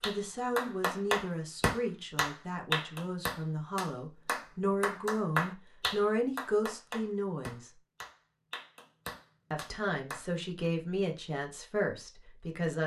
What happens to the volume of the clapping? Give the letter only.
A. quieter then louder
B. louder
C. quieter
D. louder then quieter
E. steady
C.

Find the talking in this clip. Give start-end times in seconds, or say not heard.
0.1-7.7, 9.5-12.8.